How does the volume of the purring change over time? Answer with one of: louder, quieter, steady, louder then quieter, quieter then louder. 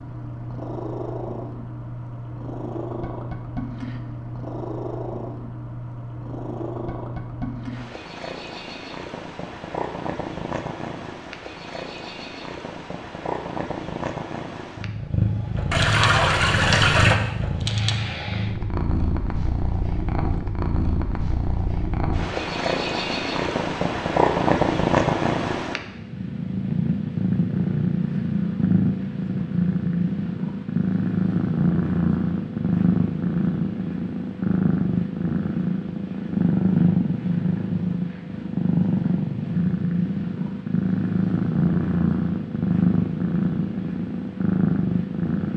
louder.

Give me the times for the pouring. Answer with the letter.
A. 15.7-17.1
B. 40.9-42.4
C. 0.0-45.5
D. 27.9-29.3
A.